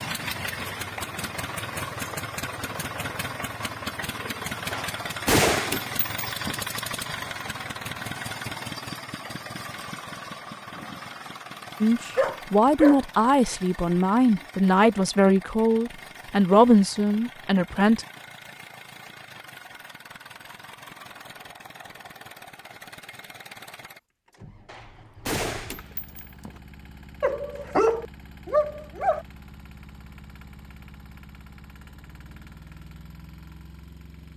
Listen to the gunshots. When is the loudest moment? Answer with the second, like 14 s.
5 s.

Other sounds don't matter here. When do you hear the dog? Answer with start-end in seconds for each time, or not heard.
12.2-13.1, 27.2-29.2.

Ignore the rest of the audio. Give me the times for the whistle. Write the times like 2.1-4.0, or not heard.
not heard.